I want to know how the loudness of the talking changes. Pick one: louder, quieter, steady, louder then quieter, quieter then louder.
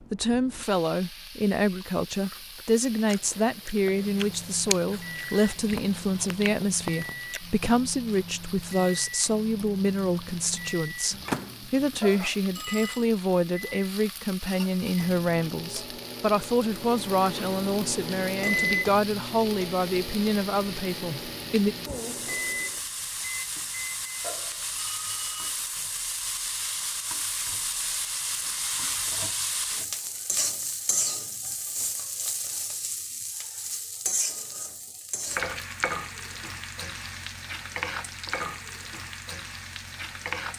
steady.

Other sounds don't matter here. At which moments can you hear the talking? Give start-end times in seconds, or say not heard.
0.1-21.8.